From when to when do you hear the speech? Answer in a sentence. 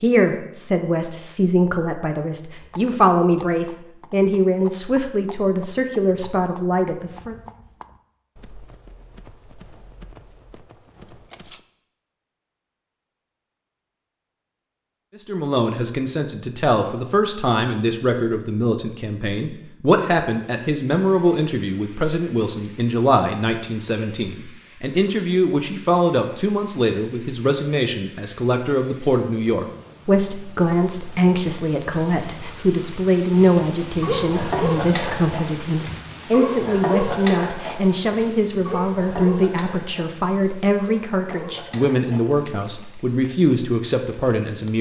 You can hear the speech from 0.0 to 7.3 s and from 15.2 to 44.7 s.